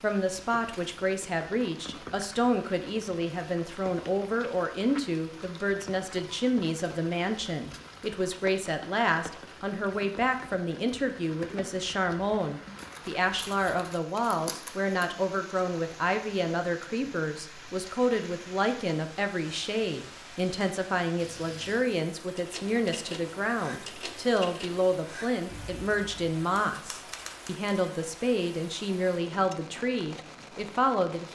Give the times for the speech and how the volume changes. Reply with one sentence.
You can hear the speech from 0.0 to 31.3 s, at a steady volume.